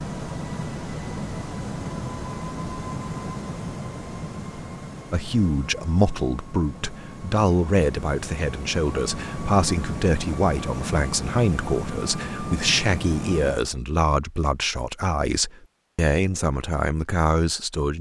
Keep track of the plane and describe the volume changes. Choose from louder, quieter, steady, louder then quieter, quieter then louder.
quieter then louder.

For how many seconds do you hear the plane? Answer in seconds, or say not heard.
14 s.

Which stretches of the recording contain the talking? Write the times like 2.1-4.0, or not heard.
5.1-17.9.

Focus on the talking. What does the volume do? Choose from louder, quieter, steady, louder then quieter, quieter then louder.
steady.